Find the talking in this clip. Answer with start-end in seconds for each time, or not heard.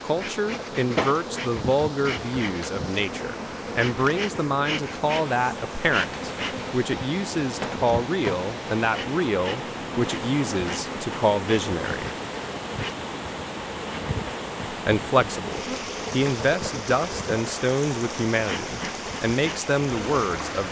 0.0-12.1, 14.7-20.6.